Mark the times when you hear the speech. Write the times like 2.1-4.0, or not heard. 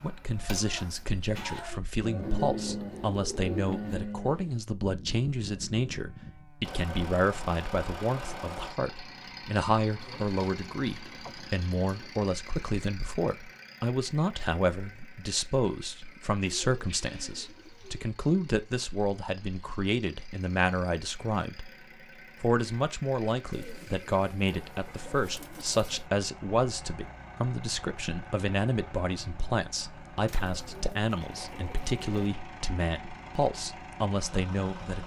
0.0-21.7, 22.4-35.0.